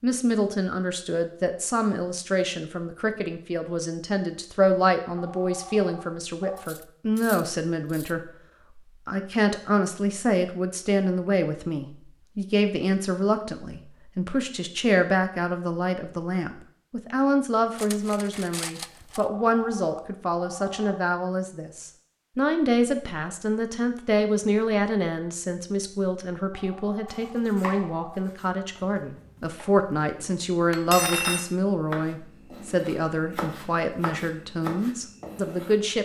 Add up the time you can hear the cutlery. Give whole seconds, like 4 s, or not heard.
4 s.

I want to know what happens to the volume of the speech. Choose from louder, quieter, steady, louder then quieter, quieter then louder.
steady.